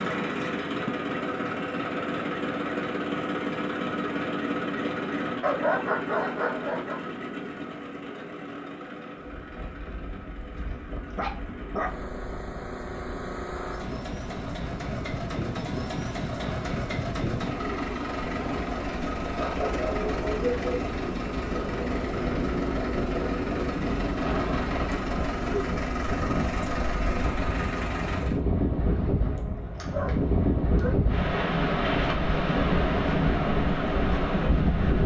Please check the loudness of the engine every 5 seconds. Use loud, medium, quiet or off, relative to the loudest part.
loud, medium, medium, loud, loud, loud, off.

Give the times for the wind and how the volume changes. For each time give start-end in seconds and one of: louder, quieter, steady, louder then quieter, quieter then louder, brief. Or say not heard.
9.2-35.0 louder.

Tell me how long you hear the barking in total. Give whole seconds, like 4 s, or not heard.
6 s.